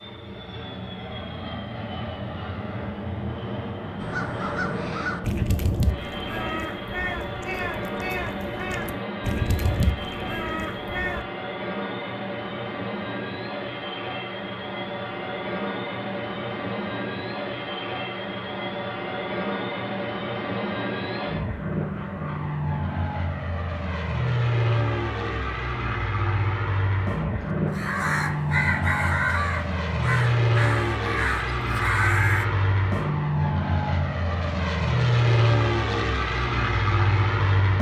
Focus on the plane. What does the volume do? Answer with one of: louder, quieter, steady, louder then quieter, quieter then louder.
louder.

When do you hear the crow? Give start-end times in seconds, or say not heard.
4.0-11.2, 27.4-32.5.